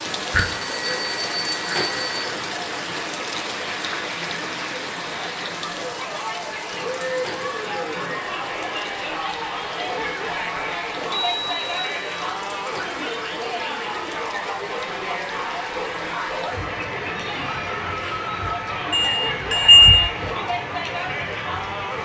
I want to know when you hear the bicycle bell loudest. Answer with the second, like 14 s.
20 s.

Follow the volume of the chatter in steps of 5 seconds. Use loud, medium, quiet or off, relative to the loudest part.
medium, loud, loud, loud, loud.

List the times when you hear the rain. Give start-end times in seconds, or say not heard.
0.0-22.0.